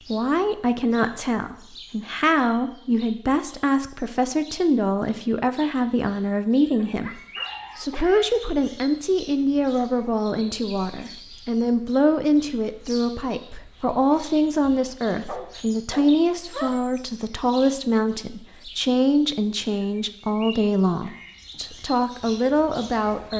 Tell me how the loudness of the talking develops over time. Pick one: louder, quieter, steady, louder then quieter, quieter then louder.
steady.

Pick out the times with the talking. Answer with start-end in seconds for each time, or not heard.
0.1-23.3.